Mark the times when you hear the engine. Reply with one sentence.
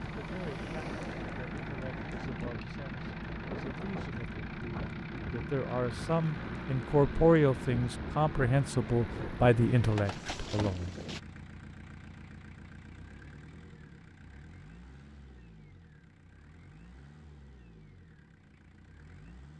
You can hear the engine from 0.0 to 19.5 s.